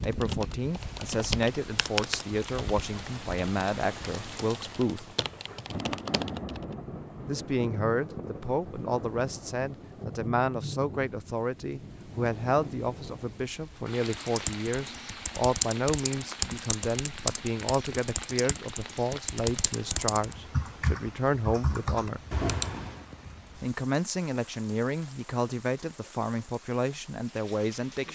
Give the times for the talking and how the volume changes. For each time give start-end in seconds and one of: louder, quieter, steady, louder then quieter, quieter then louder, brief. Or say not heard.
0.0-5.0 steady
7.2-22.2 steady
23.6-28.1 steady.